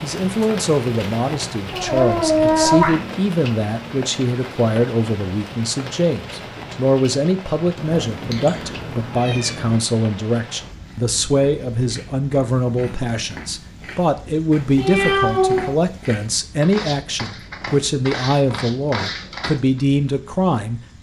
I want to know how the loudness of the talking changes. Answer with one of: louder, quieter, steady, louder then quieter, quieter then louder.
steady.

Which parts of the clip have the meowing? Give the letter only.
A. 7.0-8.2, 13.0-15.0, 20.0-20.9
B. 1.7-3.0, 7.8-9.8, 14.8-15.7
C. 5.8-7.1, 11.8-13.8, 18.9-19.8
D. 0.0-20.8
B.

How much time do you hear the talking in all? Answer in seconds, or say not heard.
21 s.